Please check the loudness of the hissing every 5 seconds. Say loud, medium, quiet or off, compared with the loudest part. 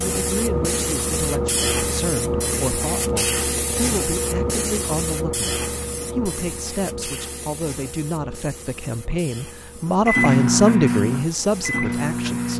loud, medium, quiet.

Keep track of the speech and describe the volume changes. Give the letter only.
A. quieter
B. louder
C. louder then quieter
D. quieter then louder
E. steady
B.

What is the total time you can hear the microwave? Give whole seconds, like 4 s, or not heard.
3 s.